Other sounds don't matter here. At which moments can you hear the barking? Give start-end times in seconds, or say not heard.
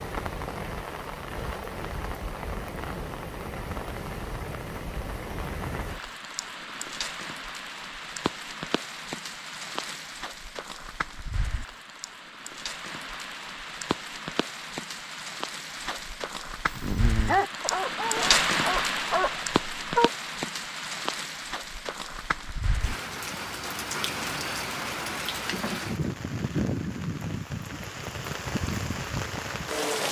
16.7-20.1.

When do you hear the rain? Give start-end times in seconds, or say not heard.
0.0-30.0.